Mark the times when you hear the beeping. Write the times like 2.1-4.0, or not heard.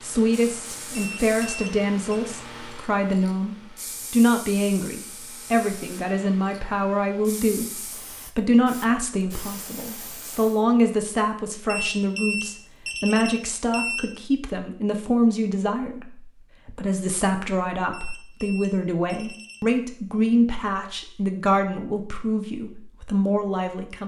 0.9-2.2, 11.7-14.1, 17.9-19.6.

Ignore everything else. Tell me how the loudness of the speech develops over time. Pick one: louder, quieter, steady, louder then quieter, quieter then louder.
steady.